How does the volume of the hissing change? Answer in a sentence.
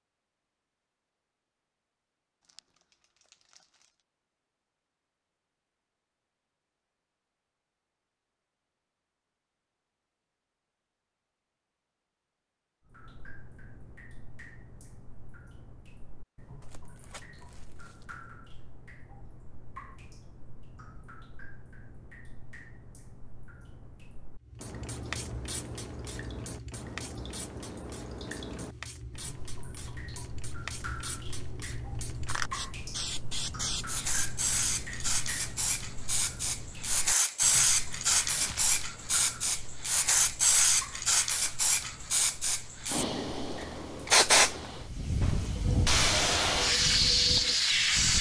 The loudness of the hissing goes up.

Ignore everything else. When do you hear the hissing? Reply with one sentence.
The hissing can be heard from 24.4 to 48.1 s.